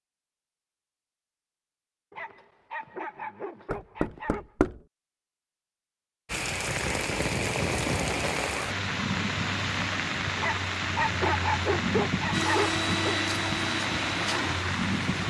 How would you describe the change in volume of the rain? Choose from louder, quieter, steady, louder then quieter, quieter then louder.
steady.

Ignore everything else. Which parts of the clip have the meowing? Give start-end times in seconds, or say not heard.
not heard.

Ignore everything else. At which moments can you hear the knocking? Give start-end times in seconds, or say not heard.
3.7-4.8.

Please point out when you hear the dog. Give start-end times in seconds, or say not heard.
2.1-4.5, 10.3-13.2.